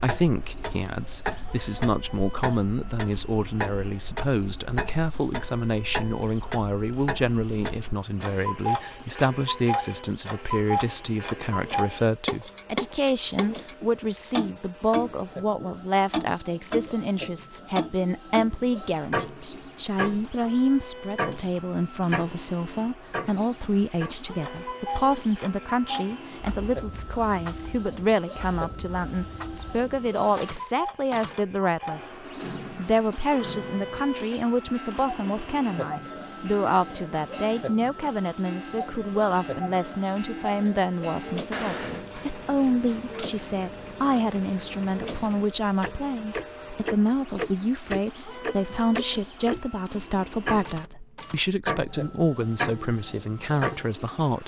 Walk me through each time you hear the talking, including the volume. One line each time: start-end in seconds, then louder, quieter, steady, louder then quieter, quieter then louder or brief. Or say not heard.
0.0-32.1 steady
32.8-54.4 steady.